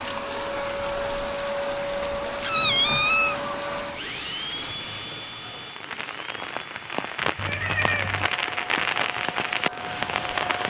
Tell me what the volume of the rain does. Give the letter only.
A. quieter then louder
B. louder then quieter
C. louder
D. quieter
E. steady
C.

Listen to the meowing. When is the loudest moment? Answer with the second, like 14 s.
3 s.